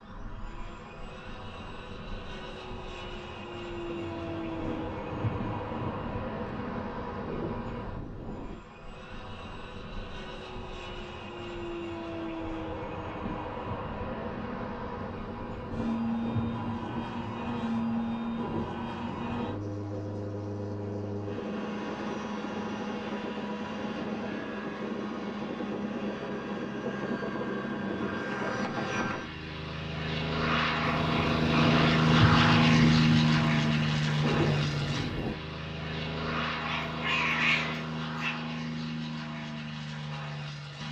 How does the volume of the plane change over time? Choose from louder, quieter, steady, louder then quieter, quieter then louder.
louder.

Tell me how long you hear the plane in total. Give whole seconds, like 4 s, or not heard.
41 s.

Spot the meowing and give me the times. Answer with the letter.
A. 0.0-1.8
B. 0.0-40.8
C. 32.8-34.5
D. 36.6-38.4
D.